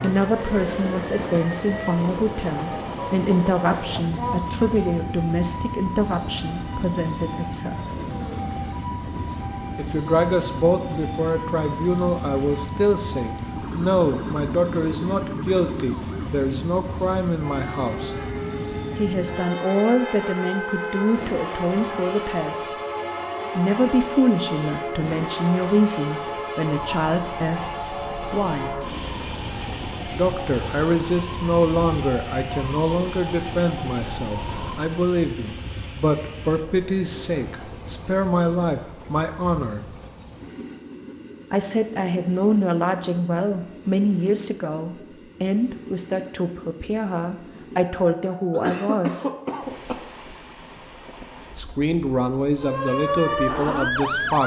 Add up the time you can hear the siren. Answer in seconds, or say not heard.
37 s.